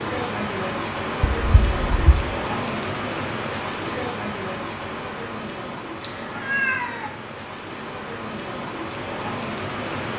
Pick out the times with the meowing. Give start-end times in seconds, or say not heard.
1.2-2.4, 6.0-7.1.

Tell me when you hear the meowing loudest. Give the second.
7 s.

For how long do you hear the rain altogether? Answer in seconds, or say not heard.
10 s.